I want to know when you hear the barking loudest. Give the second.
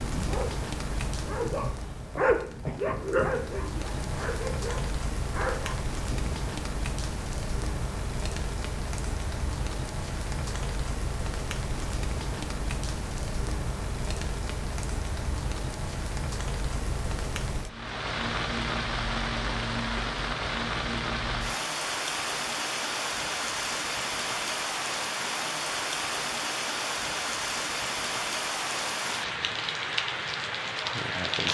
2 s.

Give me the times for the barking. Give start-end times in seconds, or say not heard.
0.0-6.3.